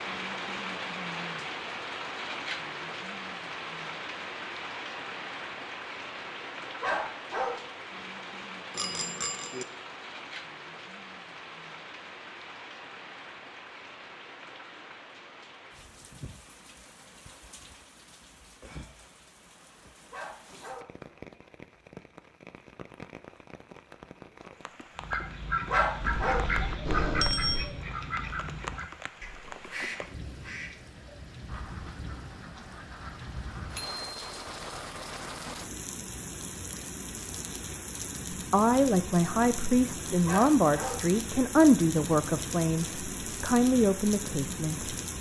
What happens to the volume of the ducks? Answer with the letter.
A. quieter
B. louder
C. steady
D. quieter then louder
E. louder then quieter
A.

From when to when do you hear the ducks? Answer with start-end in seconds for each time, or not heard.
24.9-33.9.